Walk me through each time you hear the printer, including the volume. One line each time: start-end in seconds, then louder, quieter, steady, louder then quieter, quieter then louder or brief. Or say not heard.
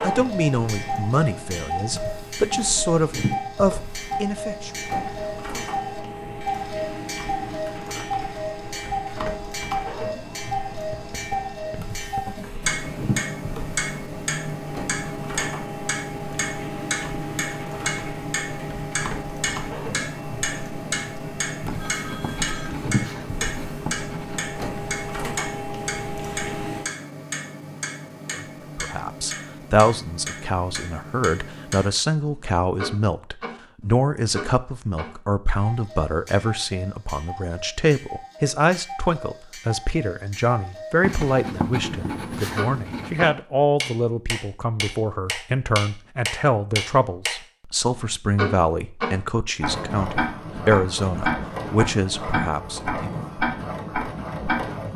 0.0-26.9 steady
49.6-54.9 steady.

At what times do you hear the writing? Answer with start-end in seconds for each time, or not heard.
10.9-12.4, 21.6-24.6, 41.0-43.3.